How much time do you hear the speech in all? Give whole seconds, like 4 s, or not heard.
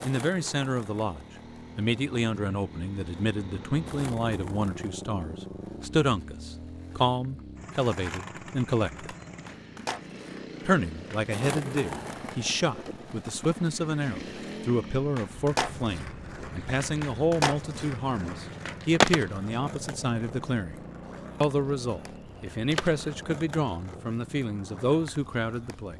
24 s.